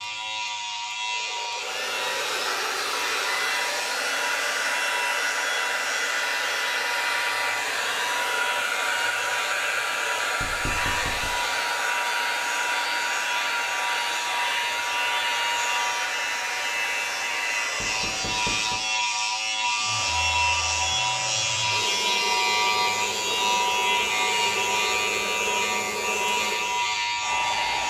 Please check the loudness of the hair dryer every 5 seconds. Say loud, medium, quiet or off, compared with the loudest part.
loud, loud, loud, medium, medium, medium.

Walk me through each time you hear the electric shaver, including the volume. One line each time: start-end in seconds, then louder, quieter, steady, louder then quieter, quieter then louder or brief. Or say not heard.
0.0-27.8 louder.